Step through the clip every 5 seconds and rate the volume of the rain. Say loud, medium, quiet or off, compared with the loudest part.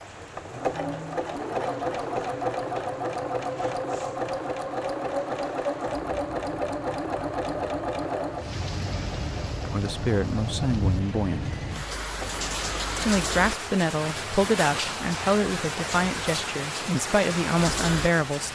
quiet, medium, loud, loud.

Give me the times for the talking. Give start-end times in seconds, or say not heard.
9.7-11.4, 12.9-18.5.